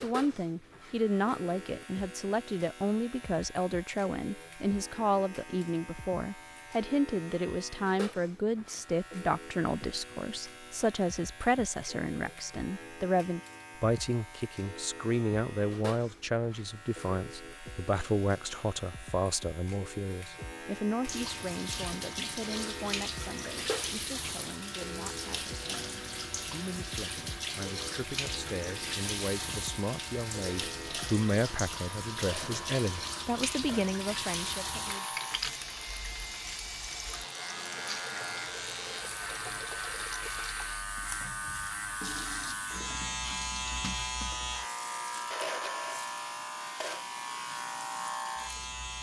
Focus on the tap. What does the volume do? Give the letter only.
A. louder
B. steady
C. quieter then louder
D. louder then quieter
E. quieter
E.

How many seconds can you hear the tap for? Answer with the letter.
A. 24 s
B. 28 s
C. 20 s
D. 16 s
B.